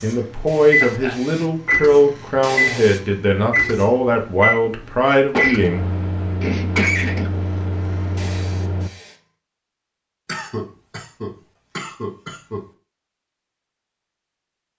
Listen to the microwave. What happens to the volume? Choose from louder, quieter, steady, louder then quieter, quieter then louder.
quieter.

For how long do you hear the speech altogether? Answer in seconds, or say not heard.
6 s.